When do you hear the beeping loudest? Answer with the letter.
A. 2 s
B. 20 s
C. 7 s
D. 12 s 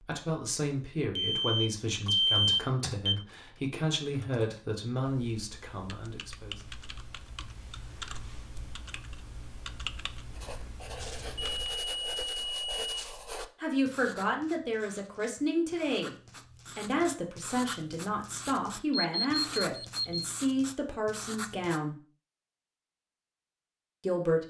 A.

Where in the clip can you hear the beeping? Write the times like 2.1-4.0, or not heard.
1.1-3.1, 11.0-13.2, 18.9-20.2.